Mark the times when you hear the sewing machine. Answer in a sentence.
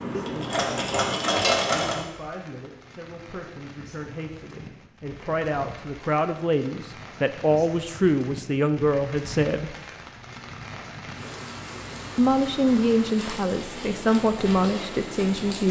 The sewing machine can be heard from 0.0 to 2.0 s.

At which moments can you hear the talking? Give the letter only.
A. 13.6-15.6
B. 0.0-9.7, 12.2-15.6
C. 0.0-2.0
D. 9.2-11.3
B.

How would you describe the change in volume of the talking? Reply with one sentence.
The volume of the talking goes up.